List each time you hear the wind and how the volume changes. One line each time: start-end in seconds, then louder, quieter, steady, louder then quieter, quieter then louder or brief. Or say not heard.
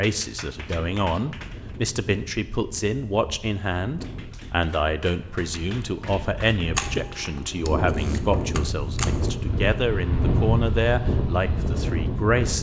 0.1-12.5 louder.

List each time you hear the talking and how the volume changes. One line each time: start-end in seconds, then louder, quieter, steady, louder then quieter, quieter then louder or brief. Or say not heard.
0.0-12.5 steady.